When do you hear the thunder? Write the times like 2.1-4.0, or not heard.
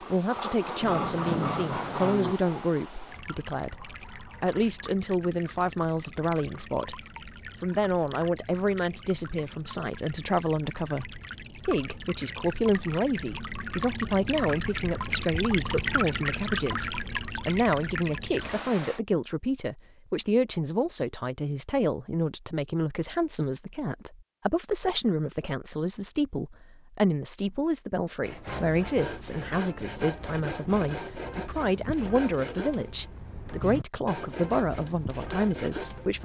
0.8-2.4.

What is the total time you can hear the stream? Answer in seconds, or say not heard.
19 s.